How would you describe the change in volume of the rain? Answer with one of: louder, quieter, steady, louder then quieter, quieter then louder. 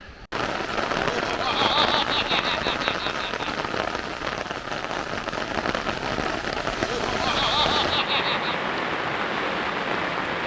steady.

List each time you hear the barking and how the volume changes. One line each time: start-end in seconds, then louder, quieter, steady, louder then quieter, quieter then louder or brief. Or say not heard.
not heard.